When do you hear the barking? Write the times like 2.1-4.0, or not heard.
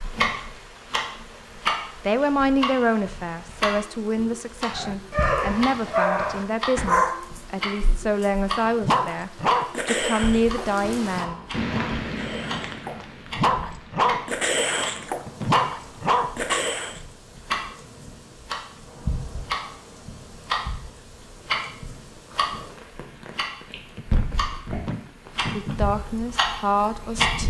4.7-17.0.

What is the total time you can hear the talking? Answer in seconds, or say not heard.
11 s.